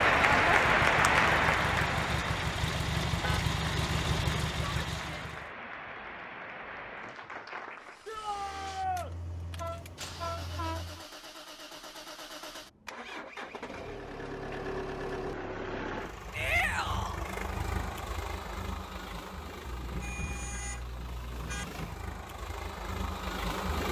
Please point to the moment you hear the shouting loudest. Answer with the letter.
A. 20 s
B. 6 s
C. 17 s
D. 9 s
C.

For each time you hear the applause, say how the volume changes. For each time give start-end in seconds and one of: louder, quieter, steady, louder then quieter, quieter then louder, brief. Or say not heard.
0.0-8.1 quieter.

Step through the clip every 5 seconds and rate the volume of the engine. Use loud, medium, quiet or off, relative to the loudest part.
loud, quiet, medium, medium, medium.